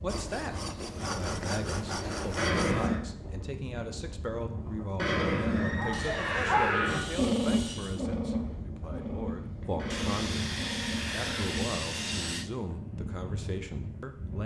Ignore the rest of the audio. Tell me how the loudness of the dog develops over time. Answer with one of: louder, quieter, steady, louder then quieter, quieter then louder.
quieter.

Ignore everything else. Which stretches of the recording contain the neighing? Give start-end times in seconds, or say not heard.
2.4-3.0, 5.0-7.0, 9.8-11.4.